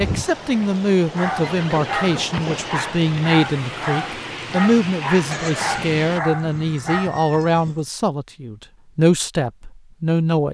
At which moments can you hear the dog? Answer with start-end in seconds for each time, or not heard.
1.1-7.2.